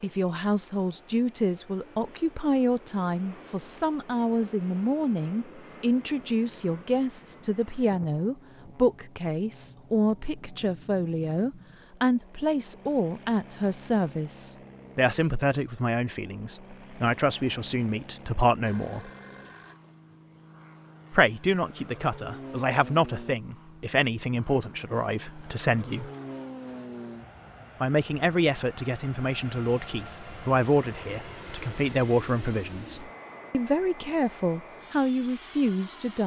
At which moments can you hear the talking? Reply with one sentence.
You can hear the talking from 0.0 to 19.1 s, from 21.1 to 26.1 s and from 27.8 to 36.2 s.